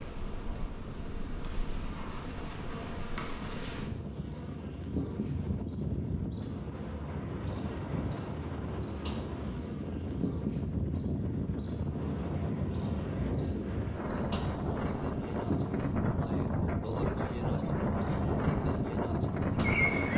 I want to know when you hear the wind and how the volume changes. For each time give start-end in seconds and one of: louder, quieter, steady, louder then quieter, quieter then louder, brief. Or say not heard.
0.0-20.1 louder.